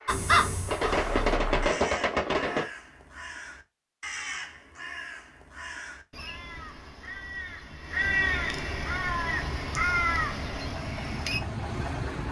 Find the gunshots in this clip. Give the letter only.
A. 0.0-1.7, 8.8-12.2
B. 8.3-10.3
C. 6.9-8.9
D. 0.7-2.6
D.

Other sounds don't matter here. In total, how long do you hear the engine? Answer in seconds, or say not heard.
5 s.